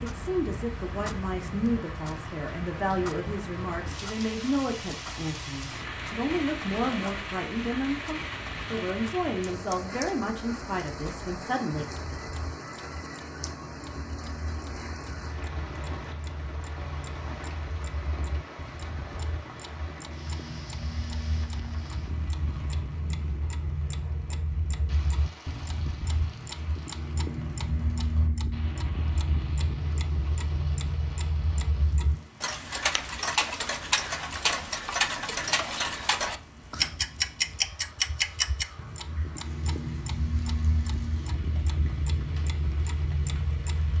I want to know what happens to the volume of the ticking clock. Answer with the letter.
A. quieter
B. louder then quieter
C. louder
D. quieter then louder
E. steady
C.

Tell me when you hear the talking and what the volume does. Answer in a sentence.
The talking can be heard from 0.0 to 11.9 s, at a steady volume.